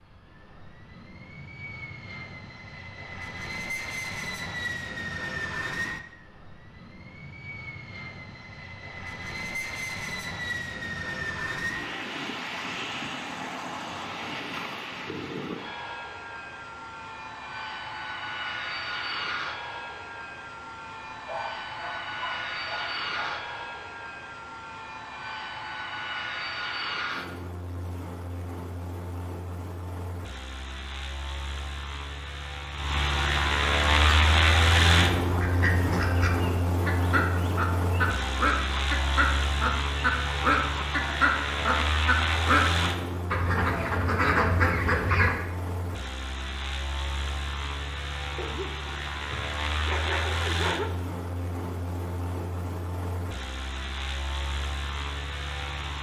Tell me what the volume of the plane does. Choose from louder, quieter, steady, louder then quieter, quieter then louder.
louder then quieter.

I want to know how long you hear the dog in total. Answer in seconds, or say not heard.
5 s.